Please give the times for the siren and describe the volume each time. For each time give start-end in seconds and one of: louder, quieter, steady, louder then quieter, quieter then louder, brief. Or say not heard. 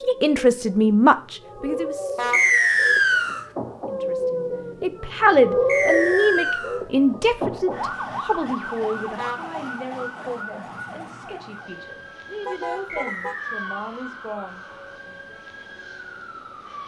0.0-16.8 louder then quieter.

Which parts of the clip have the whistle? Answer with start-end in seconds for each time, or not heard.
2.3-3.5, 5.7-6.8, 12.8-14.0.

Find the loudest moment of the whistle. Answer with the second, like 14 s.
3 s.